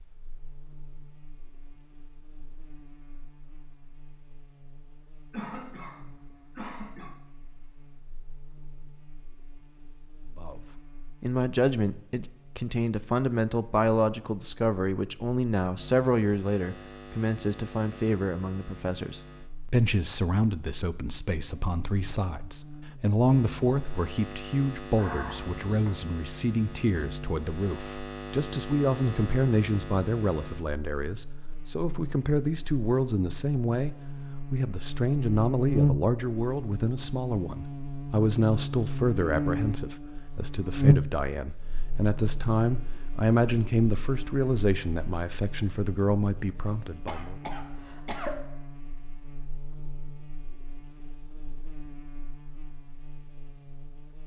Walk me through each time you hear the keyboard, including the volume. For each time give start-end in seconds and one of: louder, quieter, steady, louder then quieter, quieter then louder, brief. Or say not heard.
not heard.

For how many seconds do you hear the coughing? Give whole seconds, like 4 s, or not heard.
4 s.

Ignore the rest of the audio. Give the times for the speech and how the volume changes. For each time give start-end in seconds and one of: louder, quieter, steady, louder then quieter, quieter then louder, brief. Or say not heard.
10.3-47.4 steady.